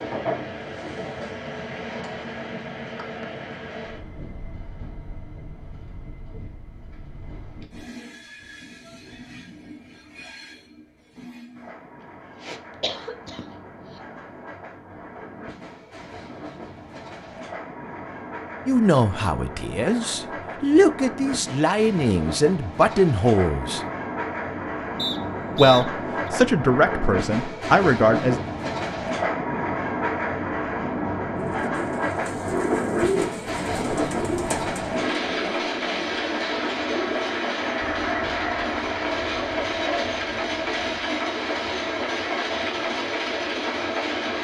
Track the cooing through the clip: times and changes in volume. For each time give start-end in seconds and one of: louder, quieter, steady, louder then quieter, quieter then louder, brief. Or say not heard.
31.4-41.0 quieter.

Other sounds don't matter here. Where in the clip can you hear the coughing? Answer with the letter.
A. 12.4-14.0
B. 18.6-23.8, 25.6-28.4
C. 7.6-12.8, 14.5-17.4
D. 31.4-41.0
A.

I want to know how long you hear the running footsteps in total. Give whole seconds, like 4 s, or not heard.
not heard.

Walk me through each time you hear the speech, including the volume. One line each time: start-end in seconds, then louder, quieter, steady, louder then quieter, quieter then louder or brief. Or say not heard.
18.6-23.8 louder
25.6-28.4 brief.